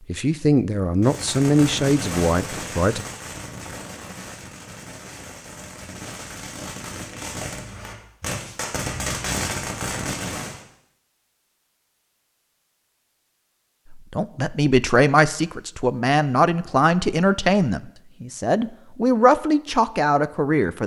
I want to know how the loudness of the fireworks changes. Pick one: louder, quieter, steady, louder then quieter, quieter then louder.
quieter then louder.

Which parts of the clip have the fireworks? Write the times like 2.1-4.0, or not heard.
1.0-10.6.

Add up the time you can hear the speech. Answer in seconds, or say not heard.
10 s.